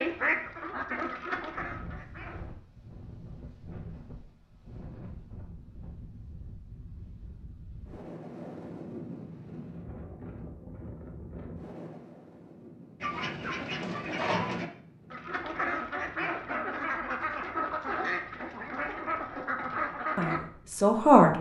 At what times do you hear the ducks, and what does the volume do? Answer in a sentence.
You can hear the ducks briefly from 0.0 to 2.5 s; and from 13.0 to 20.4 s, at a steady volume.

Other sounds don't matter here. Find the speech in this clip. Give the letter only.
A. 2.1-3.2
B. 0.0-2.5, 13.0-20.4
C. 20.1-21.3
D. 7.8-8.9
C.